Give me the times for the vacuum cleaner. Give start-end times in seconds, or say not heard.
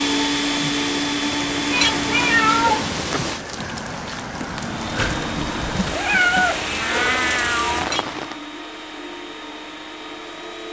0.0-2.9, 4.5-10.6.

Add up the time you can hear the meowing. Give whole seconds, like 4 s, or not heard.
4 s.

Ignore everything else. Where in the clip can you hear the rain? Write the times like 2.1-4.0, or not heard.
0.0-8.4.